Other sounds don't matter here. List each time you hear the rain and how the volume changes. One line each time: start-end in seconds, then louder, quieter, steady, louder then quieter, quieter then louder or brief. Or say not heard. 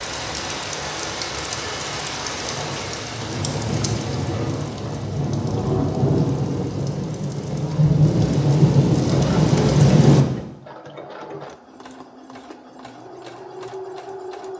0.0-10.2 louder.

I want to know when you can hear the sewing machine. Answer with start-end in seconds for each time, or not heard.
9.1-14.5.